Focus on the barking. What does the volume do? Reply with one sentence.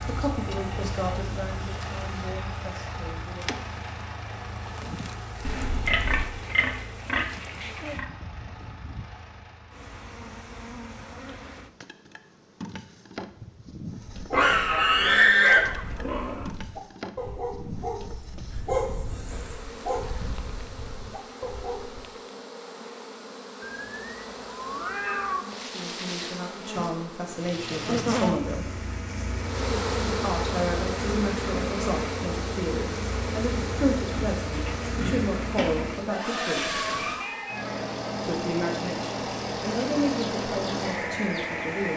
The volume of the barking goes up, then down.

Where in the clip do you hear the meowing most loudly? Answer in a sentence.
The volume of the meowing peaks at 25 seconds.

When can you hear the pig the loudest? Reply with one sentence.
The volume of the pig peaks at 15 seconds.